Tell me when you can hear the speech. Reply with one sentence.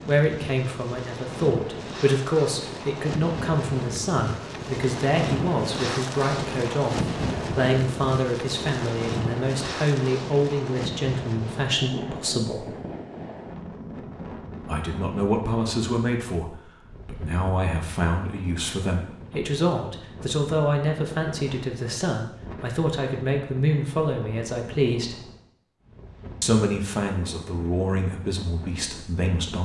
You can hear the speech from 0.1 to 12.7 s, from 14.7 to 25.2 s and from 26.4 to 29.6 s.